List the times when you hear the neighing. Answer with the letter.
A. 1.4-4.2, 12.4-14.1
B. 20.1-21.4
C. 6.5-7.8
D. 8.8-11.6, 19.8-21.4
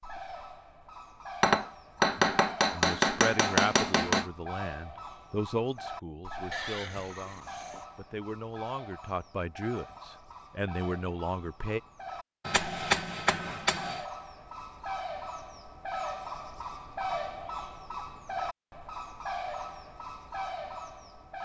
C.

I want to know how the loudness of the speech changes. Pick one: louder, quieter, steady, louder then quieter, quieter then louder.
quieter then louder.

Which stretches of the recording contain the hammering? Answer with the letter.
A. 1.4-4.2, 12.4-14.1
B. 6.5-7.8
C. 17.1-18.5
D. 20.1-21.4
A.